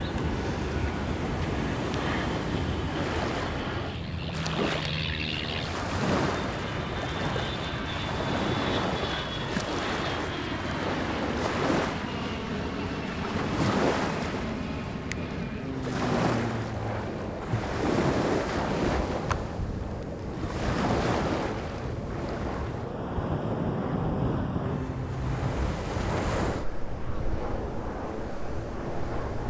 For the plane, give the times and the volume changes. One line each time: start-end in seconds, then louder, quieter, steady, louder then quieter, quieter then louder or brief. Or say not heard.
0.0-29.4 steady.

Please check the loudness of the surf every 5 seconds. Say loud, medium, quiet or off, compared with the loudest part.
loud, loud, loud, loud, loud, medium.